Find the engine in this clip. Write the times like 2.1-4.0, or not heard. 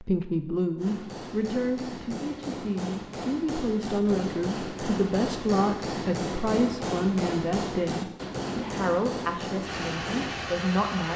9.6-11.1.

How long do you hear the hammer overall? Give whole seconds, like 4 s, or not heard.
10 s.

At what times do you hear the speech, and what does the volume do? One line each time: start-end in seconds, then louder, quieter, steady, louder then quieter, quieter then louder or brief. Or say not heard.
0.0-11.1 steady.